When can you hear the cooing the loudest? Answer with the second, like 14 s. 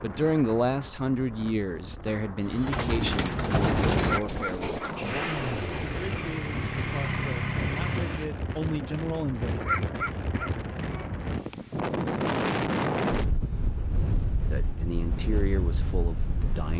4 s.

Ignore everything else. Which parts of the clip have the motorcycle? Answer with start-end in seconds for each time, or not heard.
5.0-8.2.